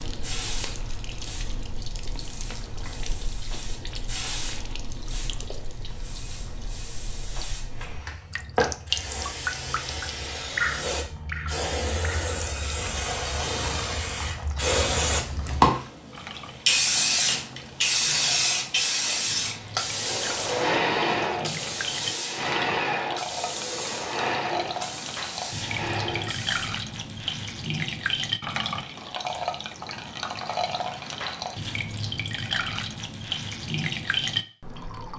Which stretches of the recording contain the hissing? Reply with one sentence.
The hissing can be heard from 0.1 to 26.7 s.